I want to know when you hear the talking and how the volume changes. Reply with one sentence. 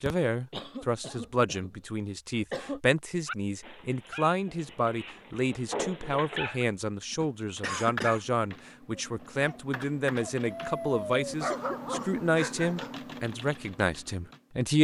The talking can be heard from 0.0 to 14.7 s, at a steady volume.